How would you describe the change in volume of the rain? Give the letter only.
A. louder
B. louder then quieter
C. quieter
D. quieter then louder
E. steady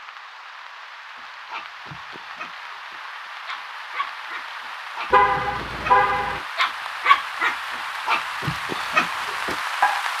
A.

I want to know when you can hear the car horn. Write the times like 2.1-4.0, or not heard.
5.1-6.4.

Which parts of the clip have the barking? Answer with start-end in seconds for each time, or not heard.
1.5-10.1.